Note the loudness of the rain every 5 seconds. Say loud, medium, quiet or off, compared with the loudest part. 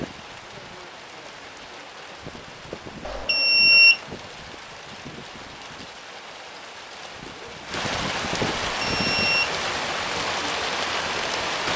quiet, loud, loud.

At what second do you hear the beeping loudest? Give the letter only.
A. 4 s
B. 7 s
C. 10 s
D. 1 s
A.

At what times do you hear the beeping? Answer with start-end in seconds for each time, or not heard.
3.0-4.0, 8.8-9.5.